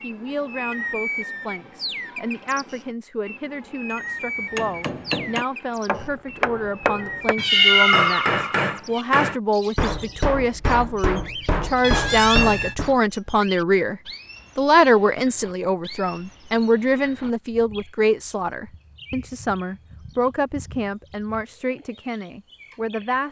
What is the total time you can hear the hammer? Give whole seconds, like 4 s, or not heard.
9 s.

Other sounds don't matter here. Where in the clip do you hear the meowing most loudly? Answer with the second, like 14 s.
8 s.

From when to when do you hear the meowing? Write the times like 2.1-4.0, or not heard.
7.4-9.1, 11.8-12.8.